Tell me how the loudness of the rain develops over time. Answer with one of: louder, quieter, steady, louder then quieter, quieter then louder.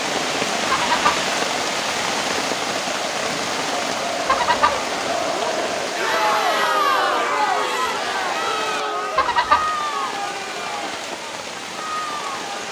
quieter.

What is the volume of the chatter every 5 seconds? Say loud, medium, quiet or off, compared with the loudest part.
medium, loud, medium.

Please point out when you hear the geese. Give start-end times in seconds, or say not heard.
0.7-1.1, 4.2-4.8, 9.2-9.7.